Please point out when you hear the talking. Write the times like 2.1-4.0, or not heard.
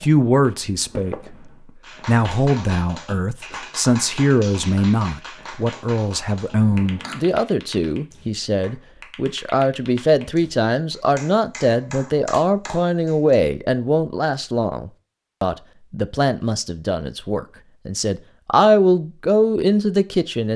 0.0-1.4, 2.0-20.5.